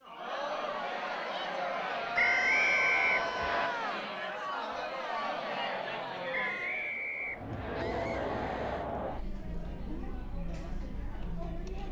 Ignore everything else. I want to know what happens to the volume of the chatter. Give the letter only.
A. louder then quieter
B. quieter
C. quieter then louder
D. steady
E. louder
B.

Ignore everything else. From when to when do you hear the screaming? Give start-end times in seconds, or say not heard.
2.1-4.0, 7.8-8.9.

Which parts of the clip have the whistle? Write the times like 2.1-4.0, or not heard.
2.1-3.7, 6.3-7.8.